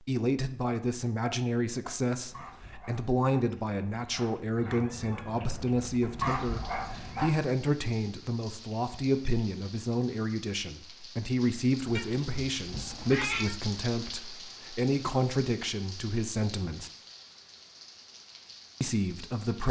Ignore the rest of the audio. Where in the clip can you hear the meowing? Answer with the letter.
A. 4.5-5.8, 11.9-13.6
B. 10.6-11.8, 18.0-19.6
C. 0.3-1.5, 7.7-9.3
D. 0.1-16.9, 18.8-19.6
A.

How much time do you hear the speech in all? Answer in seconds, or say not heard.
18 s.